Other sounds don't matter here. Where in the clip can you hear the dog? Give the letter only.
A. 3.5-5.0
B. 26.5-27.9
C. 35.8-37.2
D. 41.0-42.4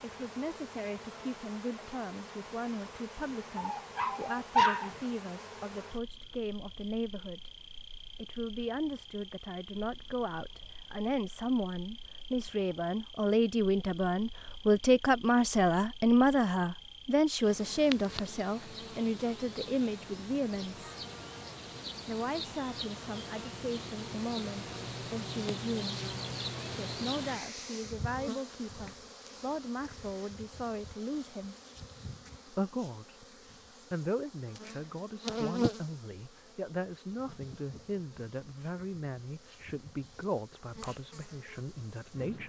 A.